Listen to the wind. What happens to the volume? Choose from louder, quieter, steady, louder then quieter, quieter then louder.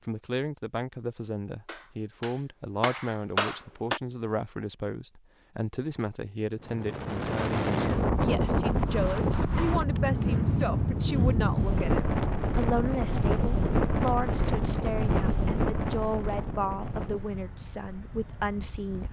quieter.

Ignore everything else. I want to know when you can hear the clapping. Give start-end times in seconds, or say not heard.
1.6-4.0.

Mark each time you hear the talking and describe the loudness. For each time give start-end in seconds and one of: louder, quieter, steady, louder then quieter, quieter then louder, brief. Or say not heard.
0.1-19.0 steady.